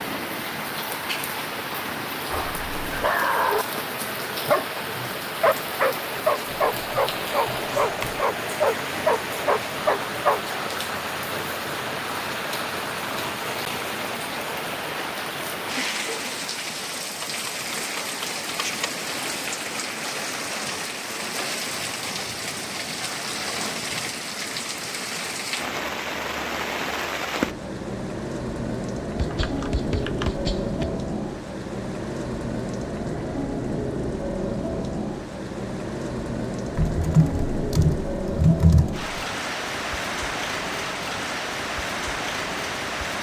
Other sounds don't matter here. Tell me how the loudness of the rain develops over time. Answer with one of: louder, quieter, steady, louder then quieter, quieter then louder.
steady.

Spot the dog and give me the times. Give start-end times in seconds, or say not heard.
2.2-10.4.